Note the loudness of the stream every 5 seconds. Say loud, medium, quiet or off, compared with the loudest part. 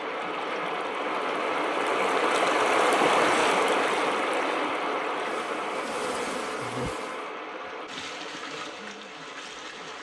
loud, medium.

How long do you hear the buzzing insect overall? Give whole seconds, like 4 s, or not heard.
2 s.